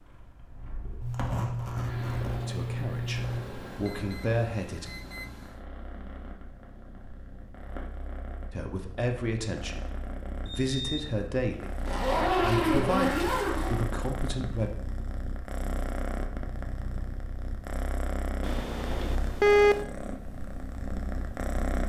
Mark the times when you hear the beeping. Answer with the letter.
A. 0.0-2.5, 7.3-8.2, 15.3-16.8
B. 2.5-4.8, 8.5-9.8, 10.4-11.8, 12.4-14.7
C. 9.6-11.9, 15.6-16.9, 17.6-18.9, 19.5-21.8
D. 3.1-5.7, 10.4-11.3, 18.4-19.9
D.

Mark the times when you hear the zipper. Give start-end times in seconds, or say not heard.
1.0-3.5, 11.8-13.8.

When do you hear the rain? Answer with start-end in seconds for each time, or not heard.
not heard.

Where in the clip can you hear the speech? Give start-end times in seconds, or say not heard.
2.5-4.8, 8.5-9.8, 10.4-11.8, 12.4-14.7.